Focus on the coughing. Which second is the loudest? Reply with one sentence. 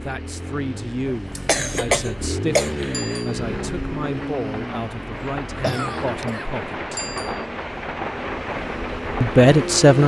The loudest moment of the coughing is at 2 seconds.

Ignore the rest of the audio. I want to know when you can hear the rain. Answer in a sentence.
The rain can be heard from 0.0 to 10.0 s.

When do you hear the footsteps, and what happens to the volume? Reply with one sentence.
You can't hear the footsteps here.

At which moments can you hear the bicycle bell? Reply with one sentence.
You can hear the bicycle bell from 2.9 to 3.5 s and from 7.0 to 7.5 s.